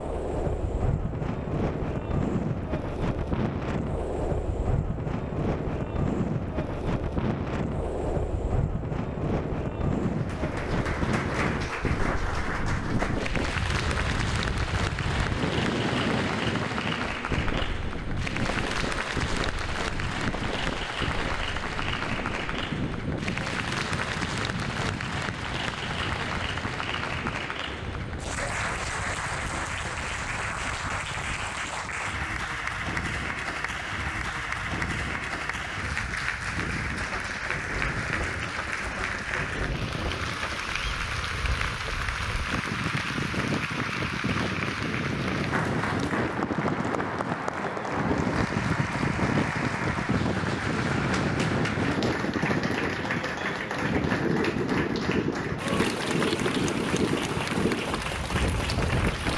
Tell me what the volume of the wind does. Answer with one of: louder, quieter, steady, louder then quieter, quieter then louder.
quieter then louder.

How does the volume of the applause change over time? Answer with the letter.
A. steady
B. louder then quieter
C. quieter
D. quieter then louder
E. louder
A.